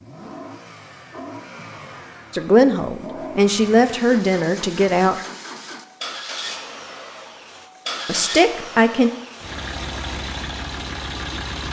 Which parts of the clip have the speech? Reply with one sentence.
The speech can be heard from 2.3 to 5.2 s and from 8.1 to 9.1 s.